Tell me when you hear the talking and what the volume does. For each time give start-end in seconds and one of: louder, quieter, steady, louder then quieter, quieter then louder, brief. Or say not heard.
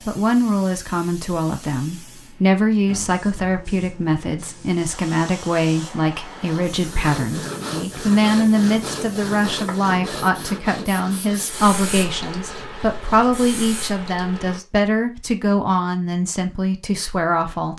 0.1-17.7 steady.